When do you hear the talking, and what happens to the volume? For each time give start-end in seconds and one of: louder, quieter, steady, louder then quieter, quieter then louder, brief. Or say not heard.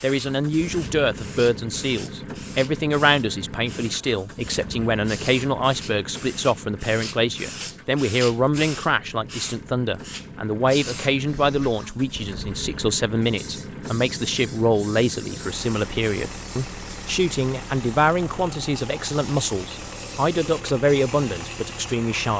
0.0-22.3 steady.